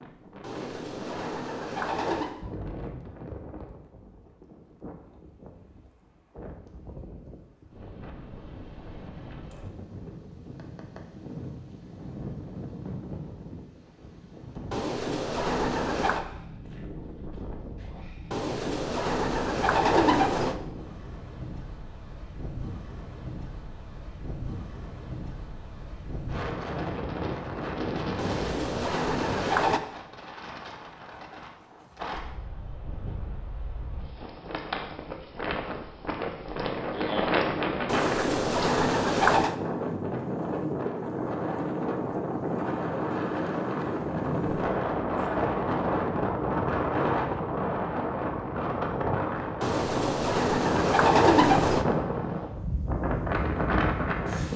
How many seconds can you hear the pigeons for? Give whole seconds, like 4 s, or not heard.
11 s.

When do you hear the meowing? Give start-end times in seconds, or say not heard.
not heard.